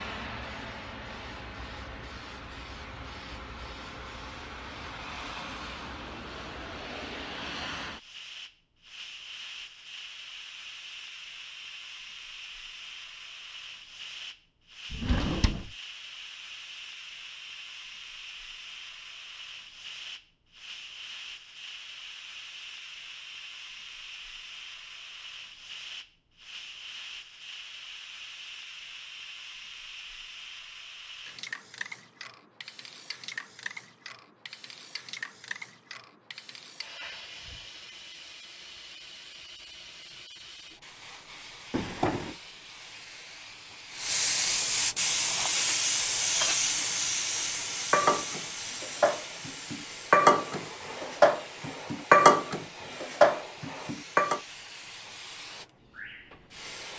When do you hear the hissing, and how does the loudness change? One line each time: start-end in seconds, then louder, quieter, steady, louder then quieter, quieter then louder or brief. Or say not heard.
0.0-56.9 louder.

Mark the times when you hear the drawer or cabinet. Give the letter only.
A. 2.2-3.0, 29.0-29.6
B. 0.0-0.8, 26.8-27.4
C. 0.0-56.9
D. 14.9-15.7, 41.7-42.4
D.